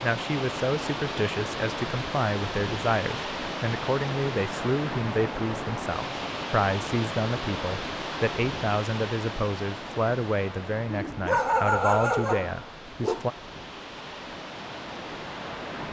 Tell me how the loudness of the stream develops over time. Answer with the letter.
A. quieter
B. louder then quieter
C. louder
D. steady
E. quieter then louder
A.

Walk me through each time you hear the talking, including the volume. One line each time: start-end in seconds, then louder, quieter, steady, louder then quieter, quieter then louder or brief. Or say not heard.
0.0-13.3 steady.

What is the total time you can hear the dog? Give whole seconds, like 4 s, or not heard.
2 s.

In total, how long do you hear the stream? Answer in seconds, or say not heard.
16 s.